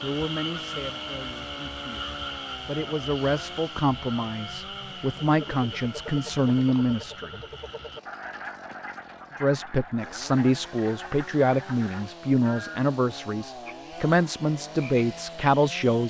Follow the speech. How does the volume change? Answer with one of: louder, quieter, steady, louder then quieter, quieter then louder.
louder.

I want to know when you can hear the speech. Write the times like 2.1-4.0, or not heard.
0.0-7.4, 9.4-16.0.